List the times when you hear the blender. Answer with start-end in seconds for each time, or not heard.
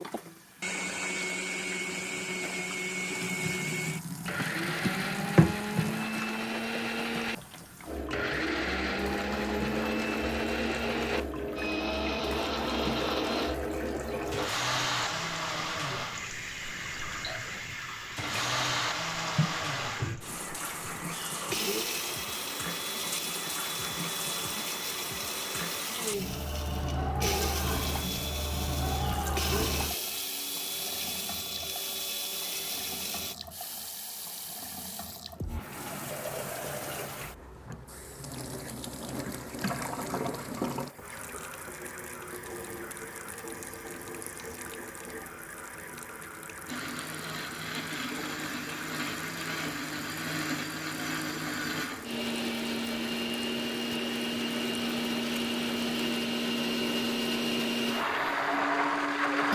0.0-33.4, 46.6-59.5.